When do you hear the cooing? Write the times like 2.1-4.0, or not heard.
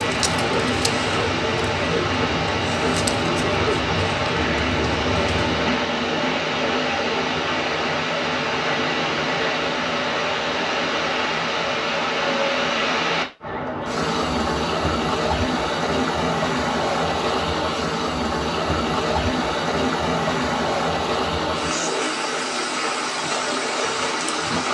0.0-5.7.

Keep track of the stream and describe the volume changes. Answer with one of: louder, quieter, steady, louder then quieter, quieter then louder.
steady.